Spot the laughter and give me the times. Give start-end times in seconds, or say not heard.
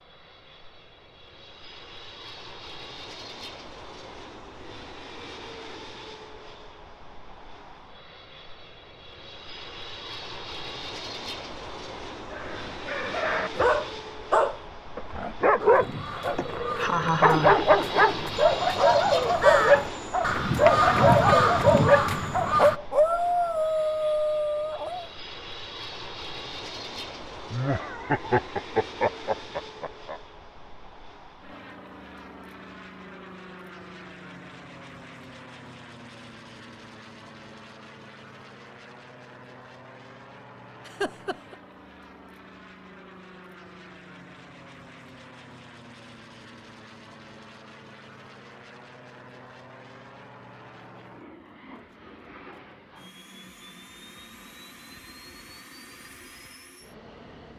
16.4-17.6, 27.5-30.2, 40.9-41.5.